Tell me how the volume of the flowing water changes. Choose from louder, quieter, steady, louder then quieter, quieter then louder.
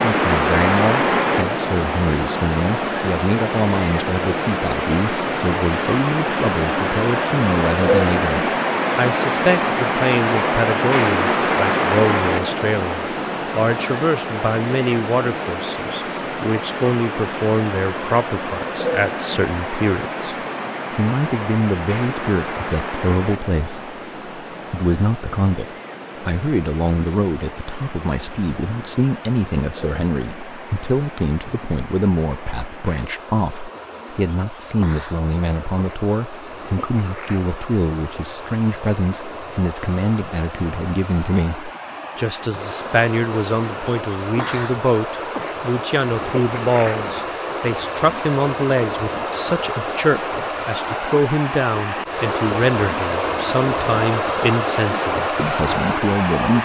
quieter then louder.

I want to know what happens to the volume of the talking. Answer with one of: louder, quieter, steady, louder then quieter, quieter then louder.
steady.